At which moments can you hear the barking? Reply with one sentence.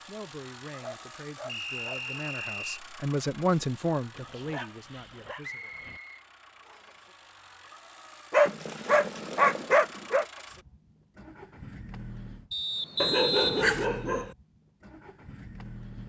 You can hear the barking from 0.7 to 2.0 s, from 4.1 to 6.0 s, from 8.3 to 10.2 s and from 13.0 to 14.3 s.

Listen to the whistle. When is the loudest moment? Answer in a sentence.
The volume of the whistle peaks at 13 seconds.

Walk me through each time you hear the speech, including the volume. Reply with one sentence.
The speech can be heard from 0.1 to 5.7 s, getting louder then quieter.